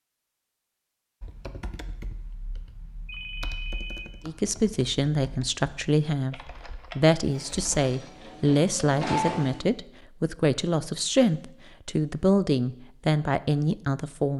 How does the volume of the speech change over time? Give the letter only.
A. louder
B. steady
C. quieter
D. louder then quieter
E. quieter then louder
B.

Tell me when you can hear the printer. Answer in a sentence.
The printer can be heard from 7.2 to 9.7 s.